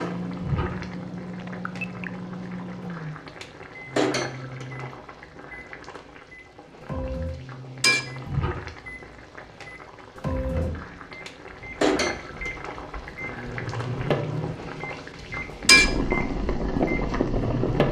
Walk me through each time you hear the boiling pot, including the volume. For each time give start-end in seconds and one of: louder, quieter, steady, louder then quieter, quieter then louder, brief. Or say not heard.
0.0-17.8 louder.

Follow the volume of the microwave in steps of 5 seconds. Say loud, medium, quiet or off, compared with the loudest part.
medium, medium, loud, loud.